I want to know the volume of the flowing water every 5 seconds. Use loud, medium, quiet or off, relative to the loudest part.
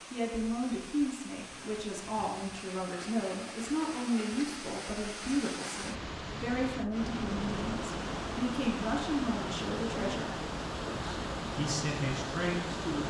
medium, loud, loud.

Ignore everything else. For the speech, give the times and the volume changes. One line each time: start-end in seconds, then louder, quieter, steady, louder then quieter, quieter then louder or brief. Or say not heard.
0.1-13.0 steady.